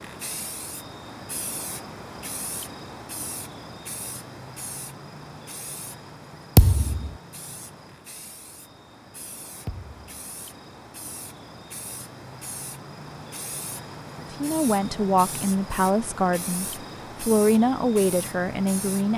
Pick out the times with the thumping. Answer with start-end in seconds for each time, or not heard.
6.5-7.1, 9.7-10.2.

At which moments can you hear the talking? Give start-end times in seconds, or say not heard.
14.2-19.1.